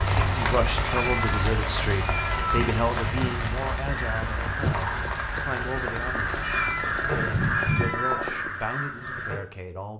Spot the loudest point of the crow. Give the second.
8 s.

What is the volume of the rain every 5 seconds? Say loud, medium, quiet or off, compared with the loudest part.
loud, medium.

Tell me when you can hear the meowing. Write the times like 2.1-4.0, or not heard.
0.8-2.7, 6.4-8.3.